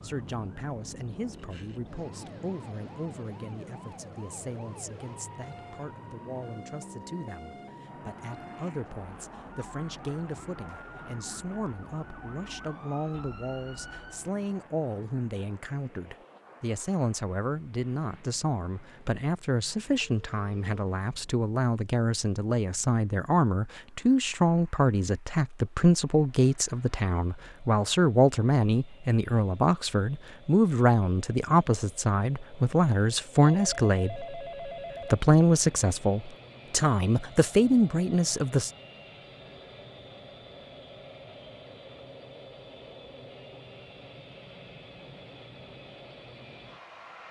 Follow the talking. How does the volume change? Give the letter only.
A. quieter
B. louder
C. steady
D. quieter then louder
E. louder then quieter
B.